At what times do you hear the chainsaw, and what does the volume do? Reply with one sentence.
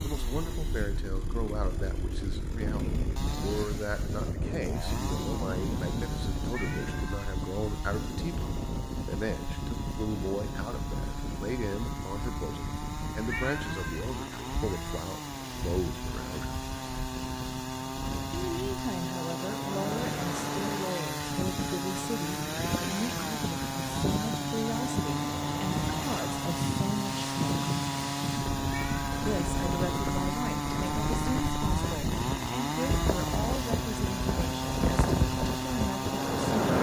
The chainsaw can be heard from 0.0 to 36.7 s, getting louder.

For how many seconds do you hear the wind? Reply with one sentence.
The wind can be heard for 37 seconds in total.